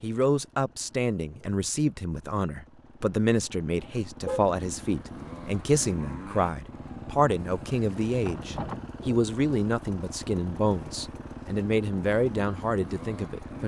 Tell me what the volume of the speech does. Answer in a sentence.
The volume of the speech stays about the same.